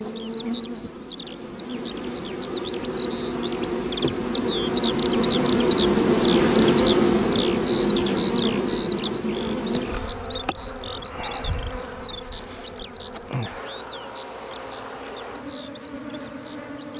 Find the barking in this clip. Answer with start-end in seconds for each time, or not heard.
not heard.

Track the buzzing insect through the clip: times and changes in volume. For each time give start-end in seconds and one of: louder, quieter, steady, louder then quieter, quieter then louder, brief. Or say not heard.
0.0-16.9 louder then quieter.